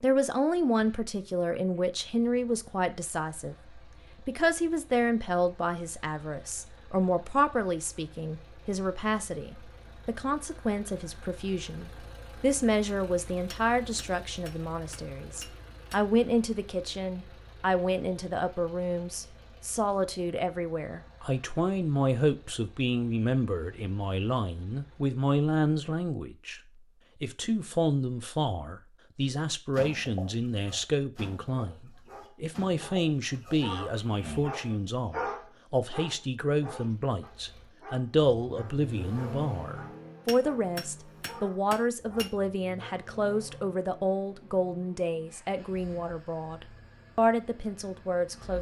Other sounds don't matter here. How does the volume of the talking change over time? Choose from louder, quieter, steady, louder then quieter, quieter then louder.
steady.